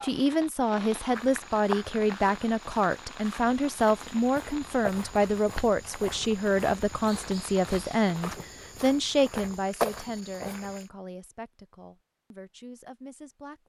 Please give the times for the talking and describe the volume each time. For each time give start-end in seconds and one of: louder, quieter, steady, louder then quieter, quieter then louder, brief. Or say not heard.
0.0-13.6 quieter.